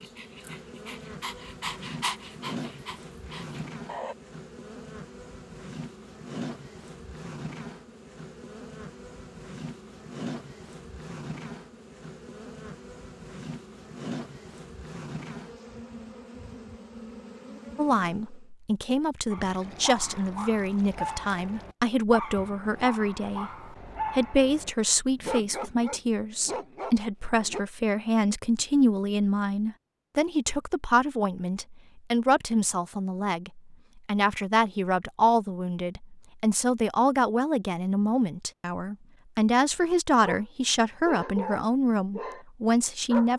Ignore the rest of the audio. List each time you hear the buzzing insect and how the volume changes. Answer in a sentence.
You can hear the buzzing insect from 0.0 to 18.4 s, at a steady volume.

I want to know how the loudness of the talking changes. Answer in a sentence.
The loudness of the talking stays about the same.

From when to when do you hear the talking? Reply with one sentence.
You can hear the talking from 17.8 to 23.5 s and from 24.1 to 43.3 s.